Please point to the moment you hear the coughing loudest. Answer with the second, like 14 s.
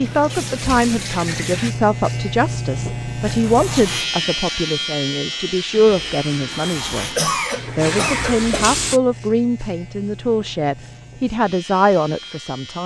7 s.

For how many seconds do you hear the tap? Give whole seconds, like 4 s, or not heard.
5 s.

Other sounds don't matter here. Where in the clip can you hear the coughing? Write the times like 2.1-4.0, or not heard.
7.0-8.7.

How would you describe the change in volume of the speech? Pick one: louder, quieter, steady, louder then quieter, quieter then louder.
steady.